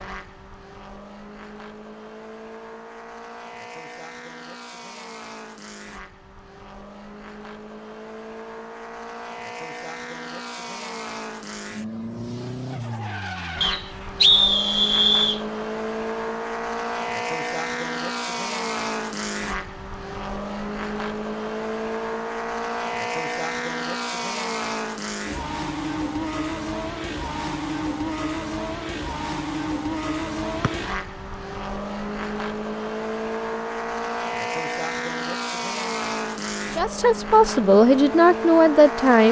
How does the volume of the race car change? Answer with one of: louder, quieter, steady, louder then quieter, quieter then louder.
louder.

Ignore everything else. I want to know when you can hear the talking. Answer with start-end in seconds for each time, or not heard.
36.8-39.2.